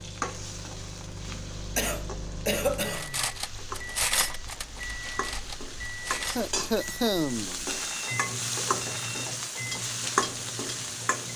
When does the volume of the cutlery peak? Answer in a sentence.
The volume of the cutlery peaks at 4 seconds.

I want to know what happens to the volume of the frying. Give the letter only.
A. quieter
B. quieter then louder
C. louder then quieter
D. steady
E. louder
E.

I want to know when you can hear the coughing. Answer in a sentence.
The coughing can be heard from 1.8 to 3.1 s and from 6.3 to 7.8 s.